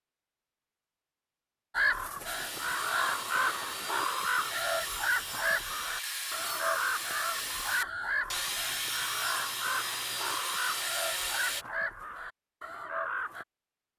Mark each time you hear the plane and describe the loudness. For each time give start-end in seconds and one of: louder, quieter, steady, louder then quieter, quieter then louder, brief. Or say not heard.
not heard.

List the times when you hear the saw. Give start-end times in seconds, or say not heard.
2.2-11.7.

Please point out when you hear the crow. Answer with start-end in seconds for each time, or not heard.
1.8-13.4.